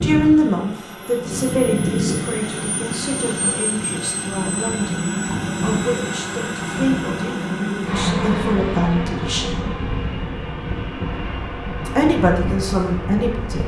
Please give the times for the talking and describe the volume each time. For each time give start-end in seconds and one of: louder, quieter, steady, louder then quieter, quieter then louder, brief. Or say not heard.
0.0-9.6 quieter then louder
11.8-13.6 brief.